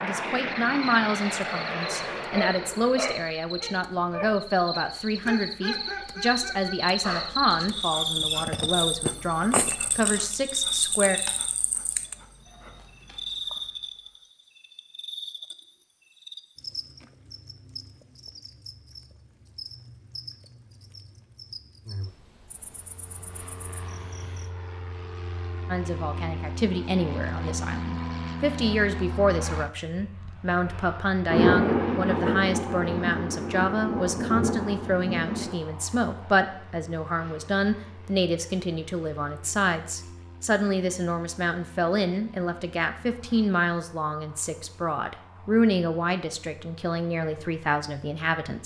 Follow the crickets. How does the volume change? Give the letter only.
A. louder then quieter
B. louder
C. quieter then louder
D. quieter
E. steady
A.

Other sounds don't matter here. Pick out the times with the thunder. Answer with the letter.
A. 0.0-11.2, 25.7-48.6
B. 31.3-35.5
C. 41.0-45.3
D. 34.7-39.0
B.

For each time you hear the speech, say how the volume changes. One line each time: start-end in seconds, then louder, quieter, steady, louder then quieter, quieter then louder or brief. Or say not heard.
0.0-11.2 steady
25.7-48.6 steady.